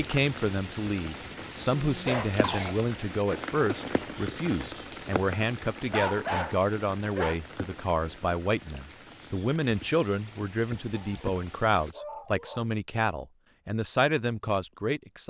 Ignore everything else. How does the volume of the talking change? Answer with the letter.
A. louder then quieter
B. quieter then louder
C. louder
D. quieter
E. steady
E.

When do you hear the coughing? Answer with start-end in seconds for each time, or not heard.
2.4-3.8.